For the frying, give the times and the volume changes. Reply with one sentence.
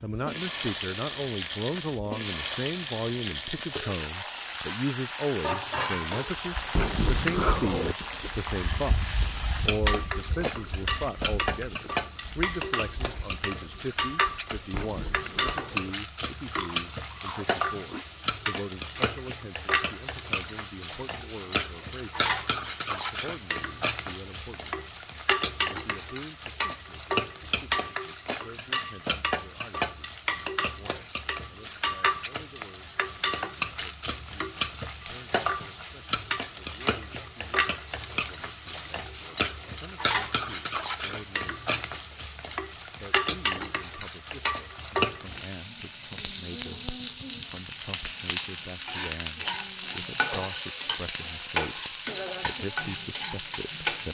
You can hear the frying from 0.1 to 54.0 s, at a steady volume.